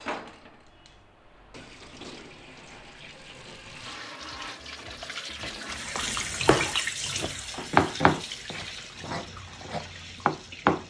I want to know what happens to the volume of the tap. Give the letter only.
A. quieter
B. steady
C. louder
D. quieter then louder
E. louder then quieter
E.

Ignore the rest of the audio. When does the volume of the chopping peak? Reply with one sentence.
The volume of the chopping peaks at 8 seconds.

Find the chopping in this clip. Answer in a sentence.
The chopping can be heard from 6.4 to 10.8 s.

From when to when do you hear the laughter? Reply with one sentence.
You can't hear the laughter here.